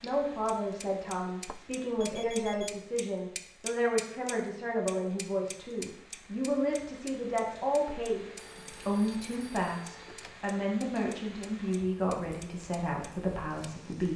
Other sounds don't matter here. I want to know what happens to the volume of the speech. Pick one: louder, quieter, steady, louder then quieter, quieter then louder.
steady.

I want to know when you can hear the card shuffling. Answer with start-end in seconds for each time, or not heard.
not heard.